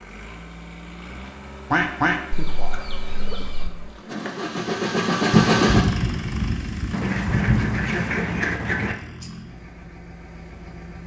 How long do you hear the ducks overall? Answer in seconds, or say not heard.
4 s.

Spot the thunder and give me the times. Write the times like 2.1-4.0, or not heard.
5.3-8.0.